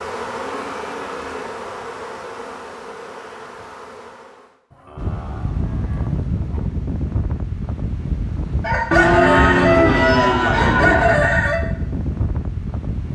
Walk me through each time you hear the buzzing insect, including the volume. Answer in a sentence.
You can hear the buzzing insect from 0.0 to 4.6 s, getting quieter.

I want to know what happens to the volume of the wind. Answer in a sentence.
The loudness of the wind stays about the same.